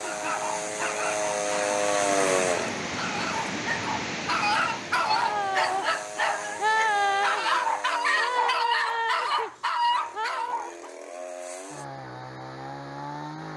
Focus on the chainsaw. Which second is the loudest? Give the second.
2 s.